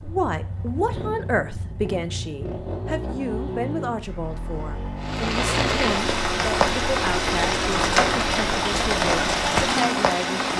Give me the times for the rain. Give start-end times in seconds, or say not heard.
5.0-10.5.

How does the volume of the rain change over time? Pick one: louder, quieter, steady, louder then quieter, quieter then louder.
steady.